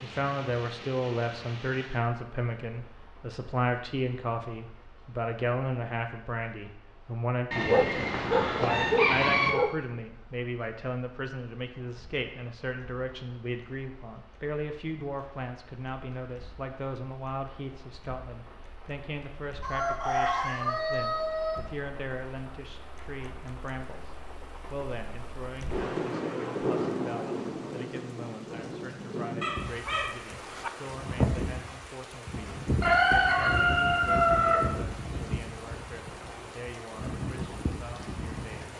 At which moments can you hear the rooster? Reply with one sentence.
The rooster can be heard from 7.5 to 9.5 s, from 19.6 to 21.6 s and from 32.8 to 34.7 s.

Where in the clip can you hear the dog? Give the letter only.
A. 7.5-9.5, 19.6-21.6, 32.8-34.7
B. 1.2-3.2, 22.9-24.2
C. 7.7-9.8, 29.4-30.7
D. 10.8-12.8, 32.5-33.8
C.